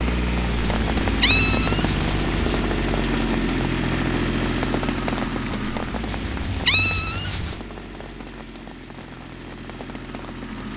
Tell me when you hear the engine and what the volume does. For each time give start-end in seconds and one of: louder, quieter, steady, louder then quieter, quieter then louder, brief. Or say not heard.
0.0-10.7 quieter.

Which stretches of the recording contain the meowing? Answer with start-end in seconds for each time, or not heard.
0.6-2.6, 6.0-7.6.